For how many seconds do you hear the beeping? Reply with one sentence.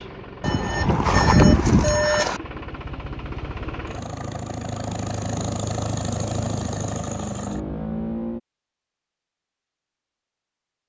You can hear the beeping for 2 seconds altogether.